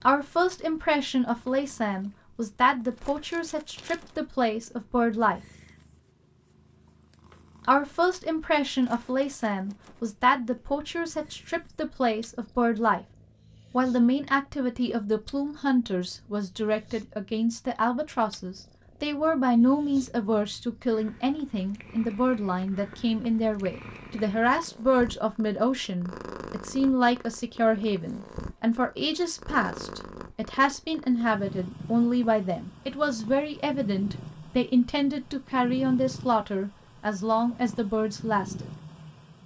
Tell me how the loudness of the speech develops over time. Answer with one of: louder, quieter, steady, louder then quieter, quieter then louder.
steady.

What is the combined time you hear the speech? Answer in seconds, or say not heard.
36 s.